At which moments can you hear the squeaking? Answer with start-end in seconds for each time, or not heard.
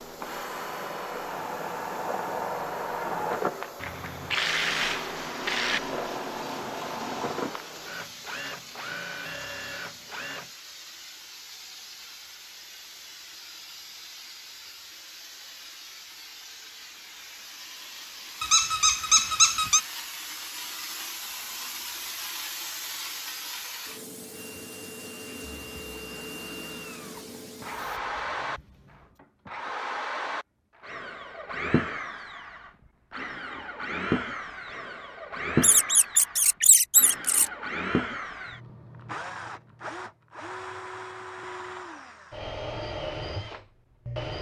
18.4-19.8, 35.6-37.5.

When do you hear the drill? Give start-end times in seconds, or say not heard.
0.0-10.4, 24.3-44.3.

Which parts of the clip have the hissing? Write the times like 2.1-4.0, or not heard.
0.0-29.2.